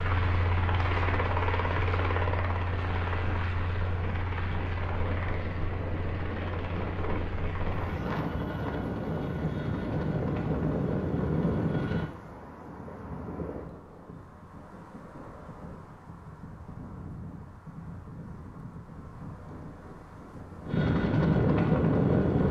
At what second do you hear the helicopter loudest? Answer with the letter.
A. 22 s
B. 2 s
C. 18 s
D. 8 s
A.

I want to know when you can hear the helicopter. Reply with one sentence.
You can hear the helicopter from 0.0 to 12.1 s and from 20.6 to 22.4 s.